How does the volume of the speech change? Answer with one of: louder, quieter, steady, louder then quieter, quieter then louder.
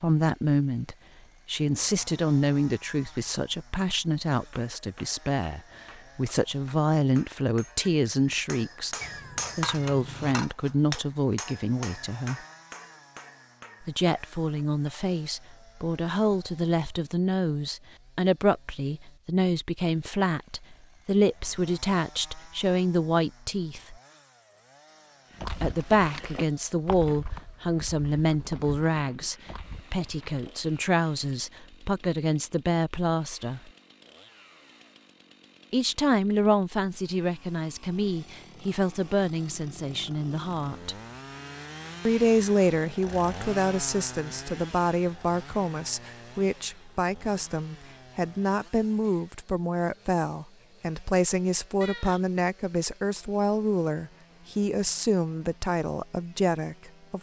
steady.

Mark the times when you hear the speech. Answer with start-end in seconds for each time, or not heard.
0.0-12.4, 13.8-23.9, 25.6-33.7, 35.7-41.0, 42.0-57.1.